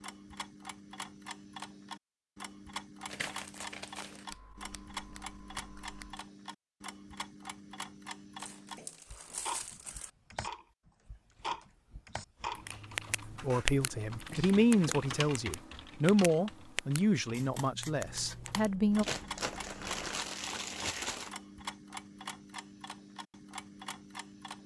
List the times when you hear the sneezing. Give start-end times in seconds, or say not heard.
not heard.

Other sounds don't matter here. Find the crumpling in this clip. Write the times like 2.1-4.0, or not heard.
3.0-4.2, 8.3-10.1, 19.0-21.4.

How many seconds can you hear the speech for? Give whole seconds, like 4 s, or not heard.
6 s.